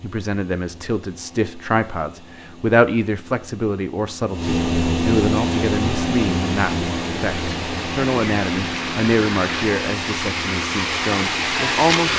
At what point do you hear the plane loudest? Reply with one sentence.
The volume of the plane peaks at 5 seconds.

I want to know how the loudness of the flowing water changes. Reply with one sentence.
The loudness of the flowing water goes up.